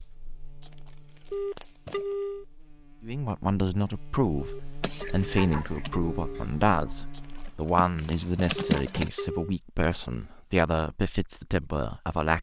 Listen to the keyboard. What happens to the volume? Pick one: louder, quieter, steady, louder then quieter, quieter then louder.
quieter then louder.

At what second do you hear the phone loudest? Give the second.
2 s.